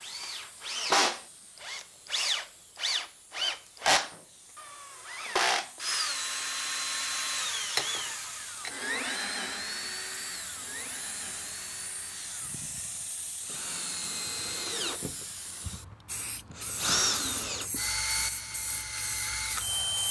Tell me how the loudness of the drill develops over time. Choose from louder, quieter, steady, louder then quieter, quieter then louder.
quieter then louder.